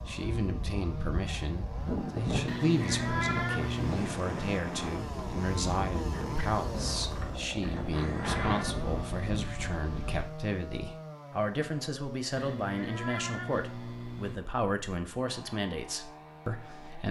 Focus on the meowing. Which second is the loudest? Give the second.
3 s.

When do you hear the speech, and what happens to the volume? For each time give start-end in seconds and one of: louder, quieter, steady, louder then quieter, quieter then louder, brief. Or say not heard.
0.1-17.0 steady.